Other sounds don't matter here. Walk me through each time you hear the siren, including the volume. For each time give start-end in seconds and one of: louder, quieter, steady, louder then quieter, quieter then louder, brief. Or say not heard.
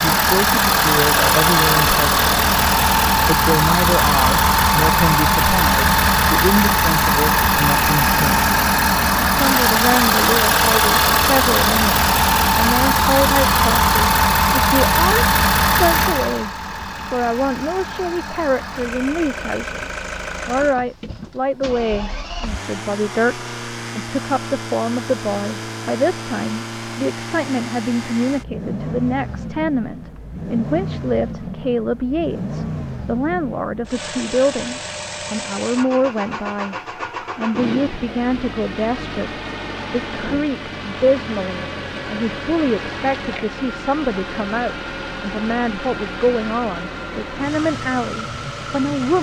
not heard.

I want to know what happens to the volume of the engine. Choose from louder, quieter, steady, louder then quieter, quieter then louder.
quieter.